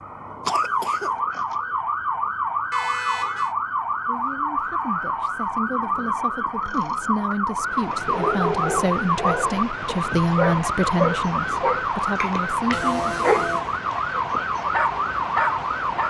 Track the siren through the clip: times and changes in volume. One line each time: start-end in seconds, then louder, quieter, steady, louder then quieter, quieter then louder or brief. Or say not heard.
0.0-16.0 steady.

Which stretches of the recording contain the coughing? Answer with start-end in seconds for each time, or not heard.
0.5-1.1.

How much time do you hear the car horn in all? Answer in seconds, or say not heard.
2 s.